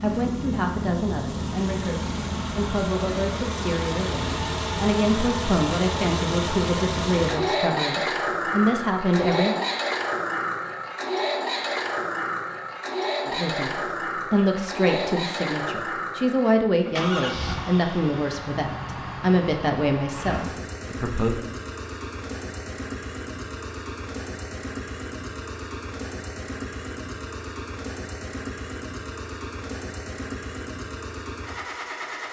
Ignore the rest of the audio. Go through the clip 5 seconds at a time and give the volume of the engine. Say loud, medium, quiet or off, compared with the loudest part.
loud, loud, loud, medium, medium, medium, medium.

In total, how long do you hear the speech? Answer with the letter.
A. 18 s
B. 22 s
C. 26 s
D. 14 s
A.